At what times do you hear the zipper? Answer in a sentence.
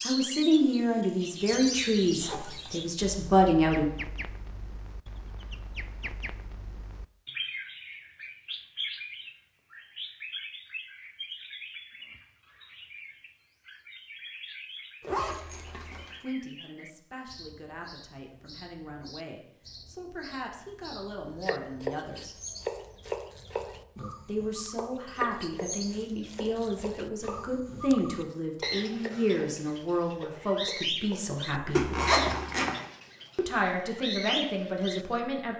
The zipper can be heard from 1.6 to 3.0 s, from 15.0 to 16.1 s and from 31.8 to 32.8 s.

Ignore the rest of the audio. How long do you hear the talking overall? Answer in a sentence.
You can hear the talking for 20 seconds altogether.